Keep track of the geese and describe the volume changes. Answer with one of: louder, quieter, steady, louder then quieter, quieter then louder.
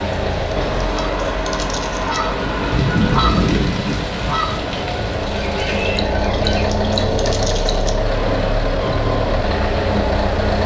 louder then quieter.